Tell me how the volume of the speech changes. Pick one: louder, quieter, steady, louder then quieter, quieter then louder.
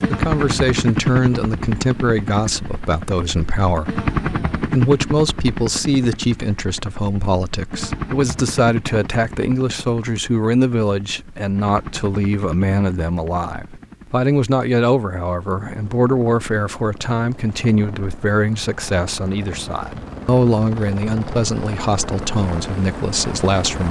steady.